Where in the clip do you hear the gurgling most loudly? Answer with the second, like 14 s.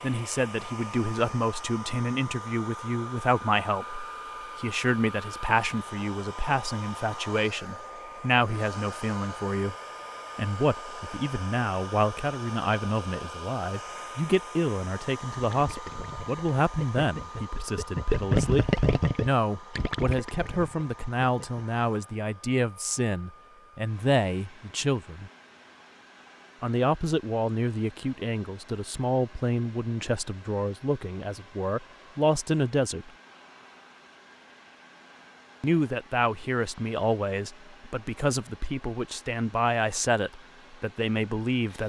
18 s.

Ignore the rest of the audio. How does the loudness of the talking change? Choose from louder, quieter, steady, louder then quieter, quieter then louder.
steady.